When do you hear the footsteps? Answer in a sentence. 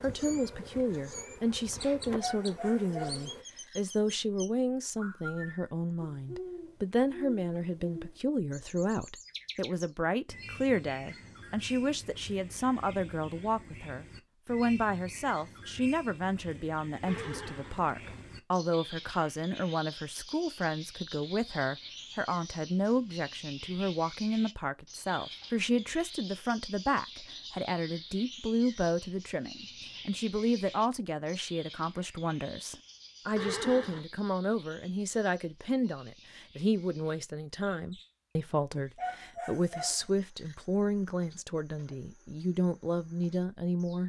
You can't hear the footsteps here.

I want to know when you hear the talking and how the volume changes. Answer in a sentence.
You can hear the talking from 0.0 to 44.0 s, at a steady volume.